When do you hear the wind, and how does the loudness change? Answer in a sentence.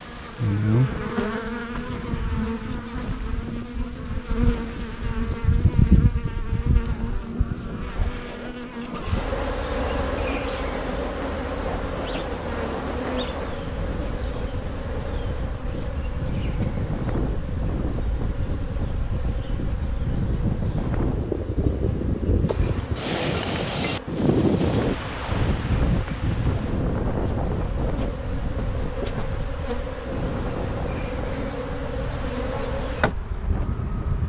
You can hear the wind from 0.0 to 34.2 s, getting louder then quieter.